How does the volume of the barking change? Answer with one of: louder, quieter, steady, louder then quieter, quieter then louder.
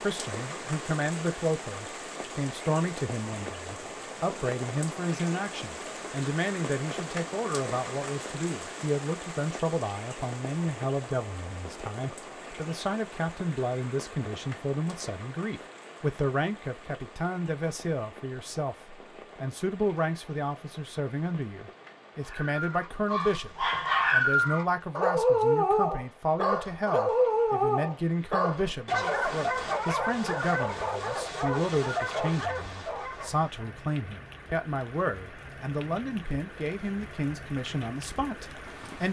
quieter.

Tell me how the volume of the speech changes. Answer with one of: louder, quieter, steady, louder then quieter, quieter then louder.
steady.